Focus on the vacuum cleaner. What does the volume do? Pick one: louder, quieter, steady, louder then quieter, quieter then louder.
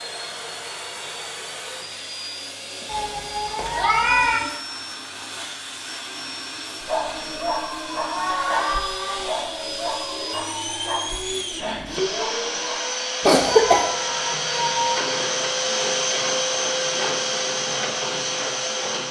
louder.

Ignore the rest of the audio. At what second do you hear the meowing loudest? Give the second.
4 s.